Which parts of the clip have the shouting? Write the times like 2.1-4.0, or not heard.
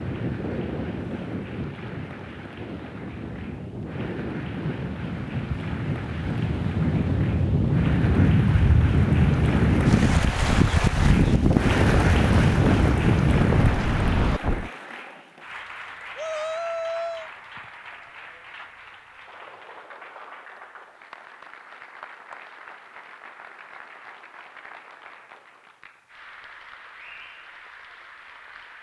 16.1-17.3.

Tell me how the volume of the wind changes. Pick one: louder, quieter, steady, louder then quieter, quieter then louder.
louder.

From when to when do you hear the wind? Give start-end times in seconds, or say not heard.
0.0-14.7.